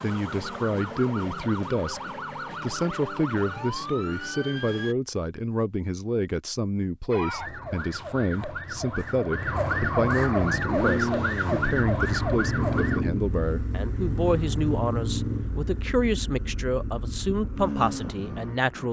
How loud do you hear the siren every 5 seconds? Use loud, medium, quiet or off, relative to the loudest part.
medium, loud, loud, off.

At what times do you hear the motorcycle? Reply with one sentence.
You can hear the motorcycle from 10.3 to 18.8 s.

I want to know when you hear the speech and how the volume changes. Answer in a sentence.
The speech can be heard briefly from 0.0 to 2.0 s; and from 2.6 to 18.8 s, at a steady volume.